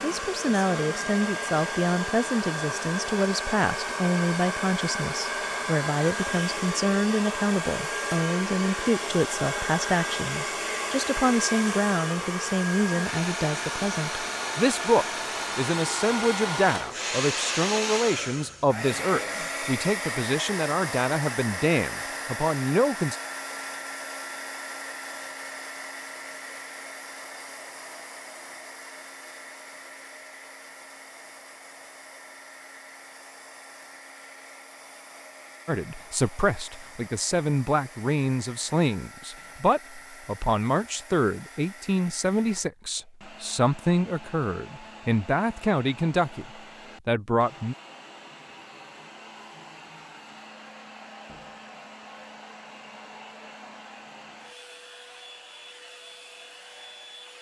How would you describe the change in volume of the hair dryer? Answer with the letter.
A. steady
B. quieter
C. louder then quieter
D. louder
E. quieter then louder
B.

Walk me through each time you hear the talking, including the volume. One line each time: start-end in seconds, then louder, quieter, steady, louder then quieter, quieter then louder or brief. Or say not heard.
0.0-23.1 steady
35.6-47.8 steady.